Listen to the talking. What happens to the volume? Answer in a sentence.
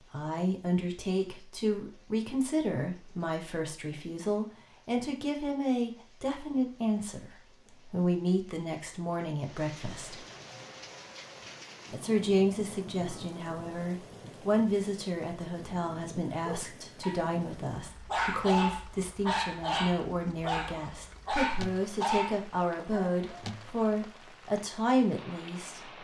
The loudness of the talking stays about the same.